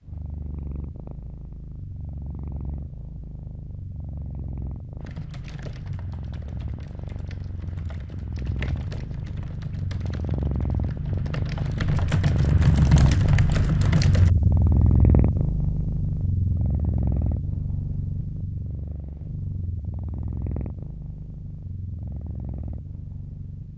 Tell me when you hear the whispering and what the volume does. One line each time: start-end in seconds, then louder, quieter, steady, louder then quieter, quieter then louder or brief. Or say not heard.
not heard.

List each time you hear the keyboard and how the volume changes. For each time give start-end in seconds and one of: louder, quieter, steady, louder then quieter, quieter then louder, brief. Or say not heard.
5.0-14.3 louder.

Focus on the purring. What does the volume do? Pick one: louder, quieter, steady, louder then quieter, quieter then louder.
louder then quieter.